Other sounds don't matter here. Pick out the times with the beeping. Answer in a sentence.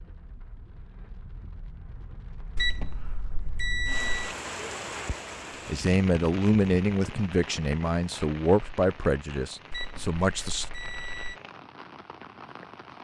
You can hear the beeping from 2.5 to 4.3 s and from 9.7 to 11.4 s.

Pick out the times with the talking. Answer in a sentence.
You can hear the talking from 5.7 to 10.7 s.